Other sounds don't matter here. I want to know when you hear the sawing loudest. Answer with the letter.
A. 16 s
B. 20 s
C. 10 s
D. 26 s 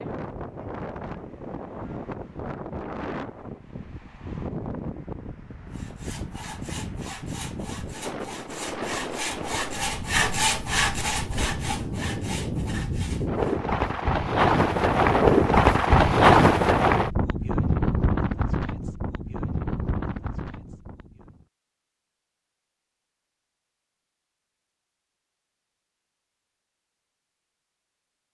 C.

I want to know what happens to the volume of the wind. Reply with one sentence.
The volume of the wind goes up, then down.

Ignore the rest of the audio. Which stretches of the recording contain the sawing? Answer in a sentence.
The sawing can be heard from 5.7 to 13.4 s.